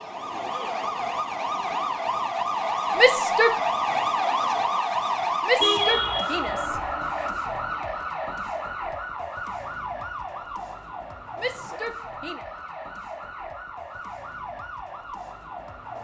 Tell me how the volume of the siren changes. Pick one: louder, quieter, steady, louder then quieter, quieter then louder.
quieter.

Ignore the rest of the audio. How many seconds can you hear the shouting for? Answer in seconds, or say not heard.
3 s.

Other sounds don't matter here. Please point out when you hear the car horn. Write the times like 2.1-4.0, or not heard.
5.6-6.7.